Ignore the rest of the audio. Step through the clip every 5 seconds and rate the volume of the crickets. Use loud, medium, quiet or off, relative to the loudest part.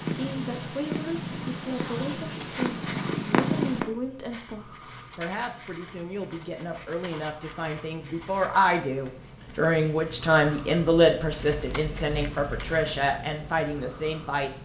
medium, medium, loud.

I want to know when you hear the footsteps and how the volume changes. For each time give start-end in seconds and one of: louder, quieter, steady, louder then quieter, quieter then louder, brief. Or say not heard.
not heard.